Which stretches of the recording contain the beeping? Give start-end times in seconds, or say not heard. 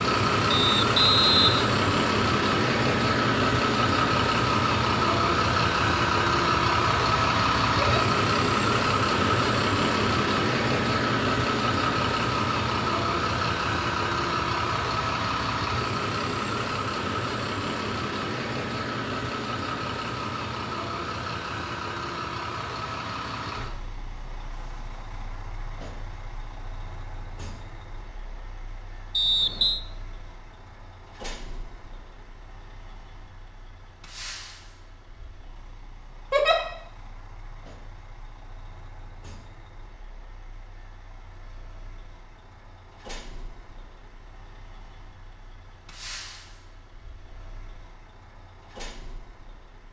not heard.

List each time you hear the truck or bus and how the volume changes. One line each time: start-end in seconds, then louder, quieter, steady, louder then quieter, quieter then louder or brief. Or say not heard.
0.0-49.8 quieter.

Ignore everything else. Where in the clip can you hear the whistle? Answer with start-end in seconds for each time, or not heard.
0.5-1.8, 29.1-29.8.